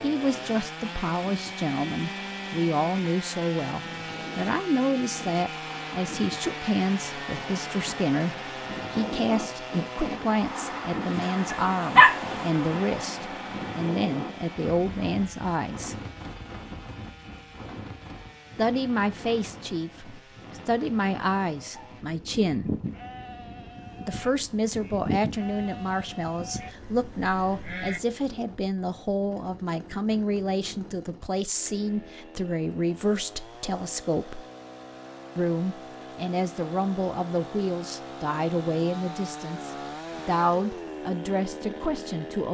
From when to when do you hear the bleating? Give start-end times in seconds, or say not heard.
21.8-28.0.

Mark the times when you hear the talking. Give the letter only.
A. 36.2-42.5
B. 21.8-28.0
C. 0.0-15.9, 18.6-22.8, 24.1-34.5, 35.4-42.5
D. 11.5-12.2
C.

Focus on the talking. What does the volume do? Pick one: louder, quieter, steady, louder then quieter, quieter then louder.
steady.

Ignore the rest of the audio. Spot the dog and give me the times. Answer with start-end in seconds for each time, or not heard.
11.5-12.2.